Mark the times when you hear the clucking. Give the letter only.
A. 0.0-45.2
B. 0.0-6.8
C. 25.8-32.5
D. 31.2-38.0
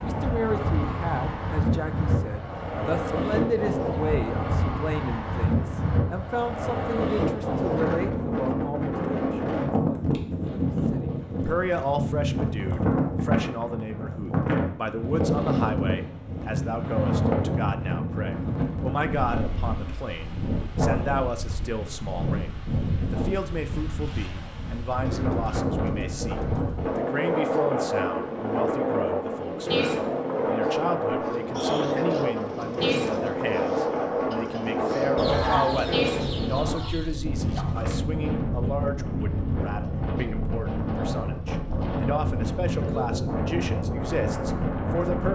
D.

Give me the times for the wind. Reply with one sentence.
You can hear the wind from 0.0 to 45.2 s.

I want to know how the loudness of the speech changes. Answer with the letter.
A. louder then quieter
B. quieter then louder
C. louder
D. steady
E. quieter
D.